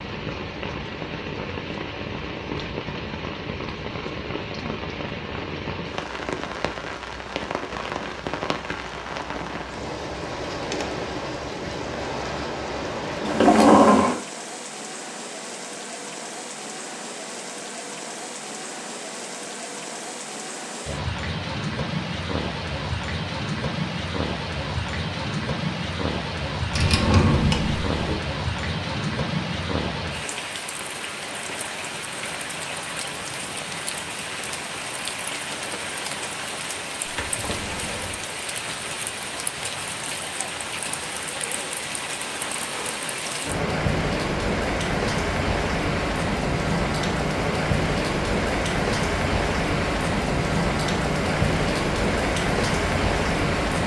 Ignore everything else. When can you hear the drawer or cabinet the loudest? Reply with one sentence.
The loudest moment of the drawer or cabinet is at 14 seconds.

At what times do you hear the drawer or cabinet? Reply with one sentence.
The drawer or cabinet can be heard from 13.2 to 14.2 s, from 26.7 to 28.2 s and from 37.0 to 38.2 s.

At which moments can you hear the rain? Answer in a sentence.
The rain can be heard from 0.0 to 53.8 s.